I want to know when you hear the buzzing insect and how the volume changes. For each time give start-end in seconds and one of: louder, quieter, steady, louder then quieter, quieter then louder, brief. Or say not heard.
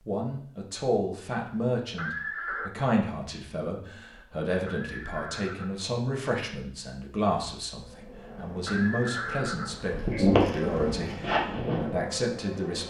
7.9-12.8 louder then quieter.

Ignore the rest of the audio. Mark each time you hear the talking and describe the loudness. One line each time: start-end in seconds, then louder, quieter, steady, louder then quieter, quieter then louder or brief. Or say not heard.
0.1-12.8 steady.